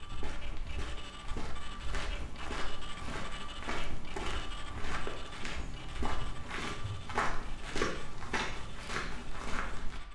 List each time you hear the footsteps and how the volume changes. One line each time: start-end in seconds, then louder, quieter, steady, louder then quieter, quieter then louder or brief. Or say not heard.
0.0-10.0 louder.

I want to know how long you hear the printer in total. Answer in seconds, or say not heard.
10 s.